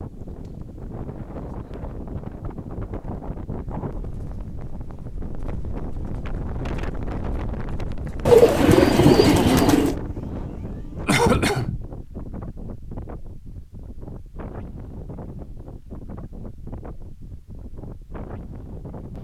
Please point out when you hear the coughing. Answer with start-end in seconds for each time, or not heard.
11.1-11.8.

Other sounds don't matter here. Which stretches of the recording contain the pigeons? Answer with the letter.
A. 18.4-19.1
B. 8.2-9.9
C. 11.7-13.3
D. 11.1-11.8
B.